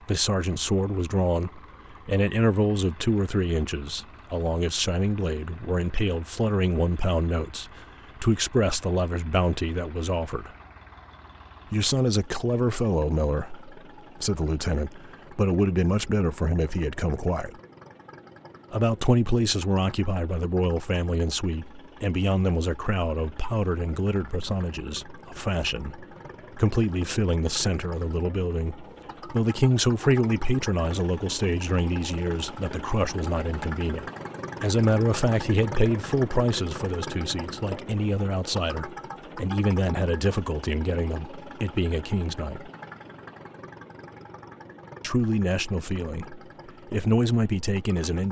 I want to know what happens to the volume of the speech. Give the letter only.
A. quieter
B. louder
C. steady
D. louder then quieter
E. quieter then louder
C.